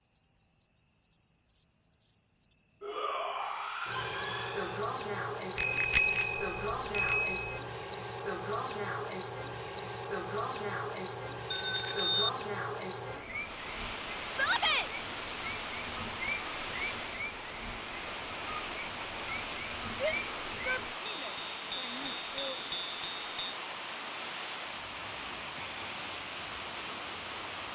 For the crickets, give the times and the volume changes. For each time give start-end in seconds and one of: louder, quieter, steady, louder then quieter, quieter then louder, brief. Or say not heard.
0.0-27.6 steady.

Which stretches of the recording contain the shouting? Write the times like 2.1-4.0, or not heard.
2.8-4.8, 14.3-14.9, 20.0-22.6.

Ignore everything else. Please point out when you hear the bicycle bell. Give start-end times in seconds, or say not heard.
5.5-7.5, 11.5-12.3, 21.1-23.6.